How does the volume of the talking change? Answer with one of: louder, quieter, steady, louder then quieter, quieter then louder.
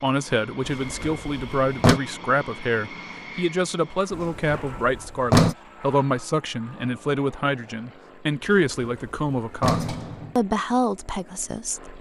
steady.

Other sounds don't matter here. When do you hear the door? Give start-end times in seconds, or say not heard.
0.7-2.0, 4.1-5.5, 8.4-10.3.